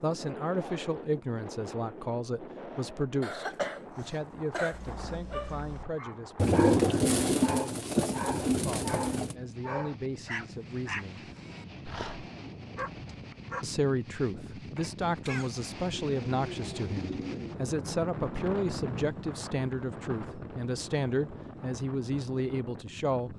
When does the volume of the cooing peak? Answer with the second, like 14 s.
7 s.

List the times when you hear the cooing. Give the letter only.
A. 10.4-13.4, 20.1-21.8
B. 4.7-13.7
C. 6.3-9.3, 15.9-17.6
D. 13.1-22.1
C.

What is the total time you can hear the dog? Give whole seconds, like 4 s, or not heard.
9 s.